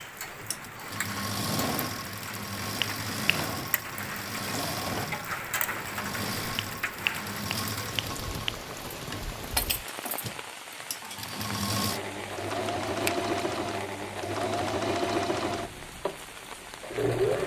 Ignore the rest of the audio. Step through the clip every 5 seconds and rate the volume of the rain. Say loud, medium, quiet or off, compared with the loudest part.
loud, loud, medium, medium.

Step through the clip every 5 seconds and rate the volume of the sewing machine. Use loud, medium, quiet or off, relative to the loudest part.
medium, medium, loud, loud.